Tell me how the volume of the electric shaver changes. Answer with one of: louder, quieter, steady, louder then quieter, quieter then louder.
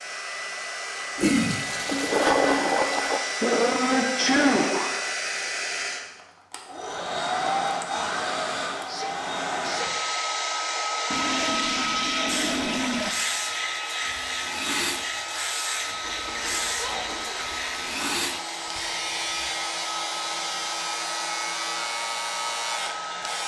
steady.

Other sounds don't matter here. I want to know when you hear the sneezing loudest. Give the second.
4 s.